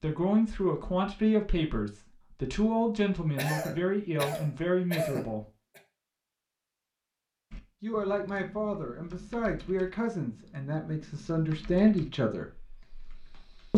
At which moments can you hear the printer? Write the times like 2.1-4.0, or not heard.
not heard.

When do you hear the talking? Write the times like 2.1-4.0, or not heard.
0.0-5.5, 7.8-12.4.